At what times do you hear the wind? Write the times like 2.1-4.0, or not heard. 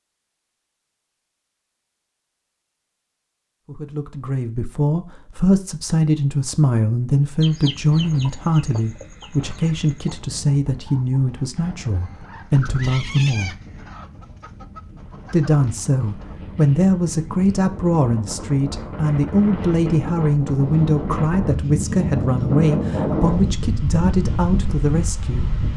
7.8-25.7.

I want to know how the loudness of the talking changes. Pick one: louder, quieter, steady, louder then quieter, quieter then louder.
steady.